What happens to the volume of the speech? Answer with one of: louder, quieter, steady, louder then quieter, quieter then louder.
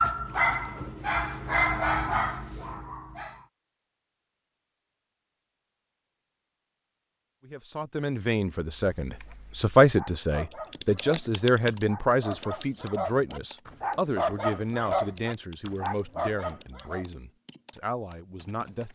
quieter.